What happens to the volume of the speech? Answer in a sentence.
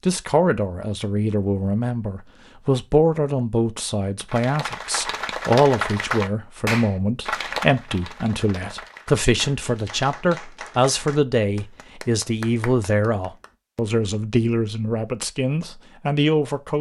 The volume of the speech stays about the same.